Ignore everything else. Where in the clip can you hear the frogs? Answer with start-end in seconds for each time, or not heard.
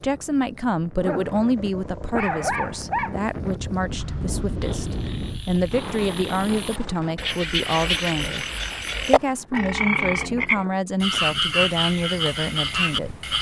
4.6-13.3.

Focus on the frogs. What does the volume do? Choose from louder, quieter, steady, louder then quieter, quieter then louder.
louder.